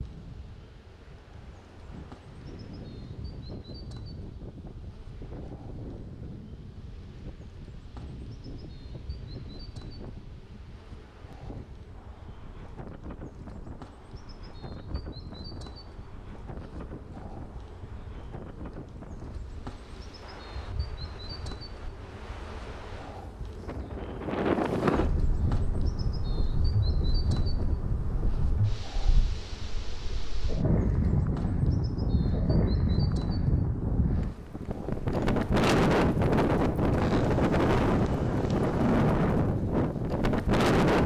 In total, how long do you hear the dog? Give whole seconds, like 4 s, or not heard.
not heard.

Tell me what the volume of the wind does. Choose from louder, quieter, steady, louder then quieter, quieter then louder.
louder.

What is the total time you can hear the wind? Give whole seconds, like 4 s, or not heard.
41 s.